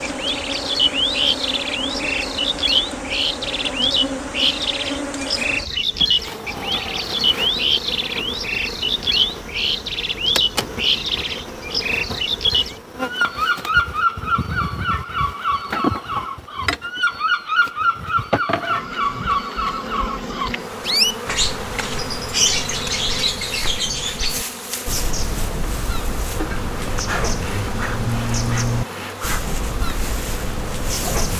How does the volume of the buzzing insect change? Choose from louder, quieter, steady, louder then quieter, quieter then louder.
steady.